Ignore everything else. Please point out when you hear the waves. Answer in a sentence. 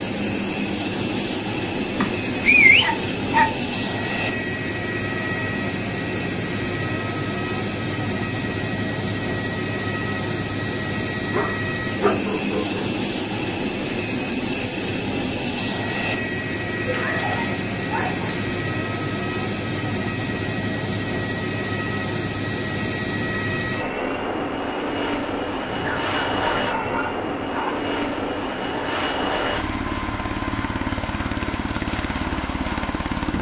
You can't hear the waves here.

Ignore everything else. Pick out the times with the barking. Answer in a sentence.
The barking can be heard from 1.9 to 3.5 s, from 11.3 to 12.8 s, from 16.9 to 18.3 s and from 25.6 to 27.8 s.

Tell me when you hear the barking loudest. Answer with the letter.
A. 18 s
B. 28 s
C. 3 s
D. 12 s
C.